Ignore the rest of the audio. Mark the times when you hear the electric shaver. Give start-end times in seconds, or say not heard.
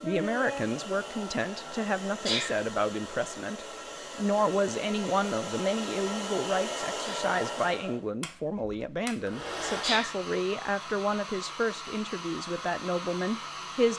not heard.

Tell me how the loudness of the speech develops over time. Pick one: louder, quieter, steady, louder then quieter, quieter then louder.
steady.